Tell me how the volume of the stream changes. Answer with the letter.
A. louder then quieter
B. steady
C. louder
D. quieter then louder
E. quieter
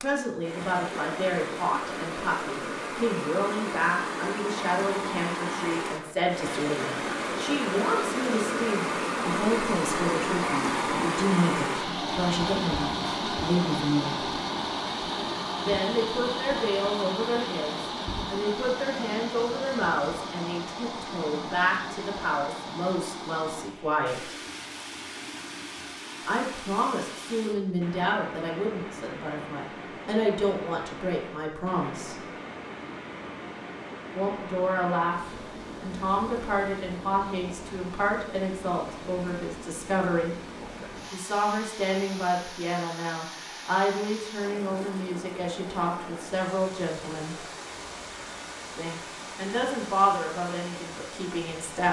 E.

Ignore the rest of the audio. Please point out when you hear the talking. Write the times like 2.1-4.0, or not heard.
0.0-14.3, 15.6-24.4, 26.2-32.1, 34.1-40.4, 41.1-47.5, 48.8-51.8.